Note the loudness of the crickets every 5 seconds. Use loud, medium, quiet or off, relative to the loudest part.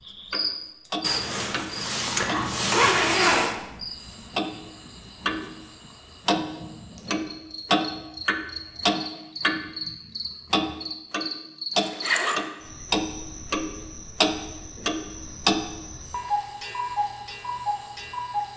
loud, medium, medium, quiet.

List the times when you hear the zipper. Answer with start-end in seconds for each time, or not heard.
1.0-3.5, 11.8-12.4.